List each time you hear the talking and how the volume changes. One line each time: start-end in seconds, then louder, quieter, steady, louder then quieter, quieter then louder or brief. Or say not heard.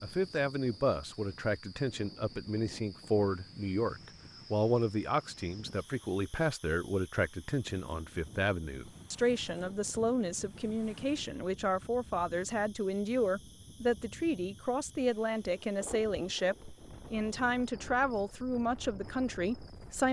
0.0-20.0 steady.